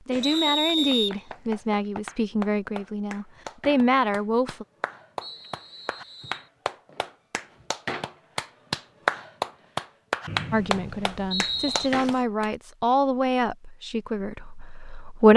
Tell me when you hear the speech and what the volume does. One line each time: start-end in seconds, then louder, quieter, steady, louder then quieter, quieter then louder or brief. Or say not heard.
0.1-4.7 quieter then louder
10.5-15.3 louder then quieter.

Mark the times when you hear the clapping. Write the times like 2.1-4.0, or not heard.
0.1-12.4.